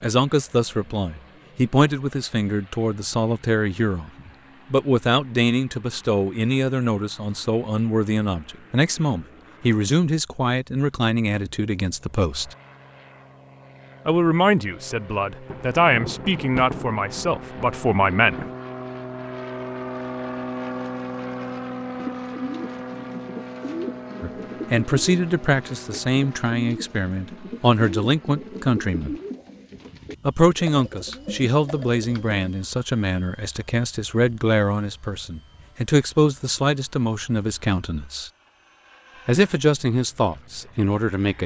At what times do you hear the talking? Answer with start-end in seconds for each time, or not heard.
0.0-4.1, 4.7-12.6, 14.1-18.4, 24.2-29.1, 30.2-38.3, 39.2-41.4.